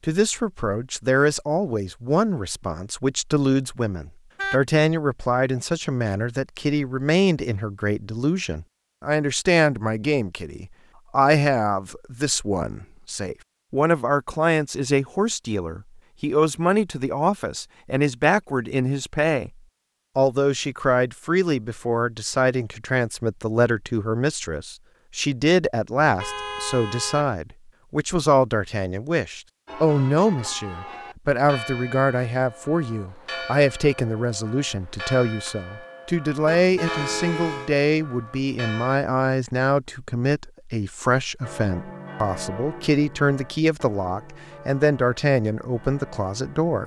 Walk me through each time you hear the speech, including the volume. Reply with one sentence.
The speech can be heard from 0.1 to 19.5 s, at a steady volume; and from 20.1 to 46.8 s, at a steady volume.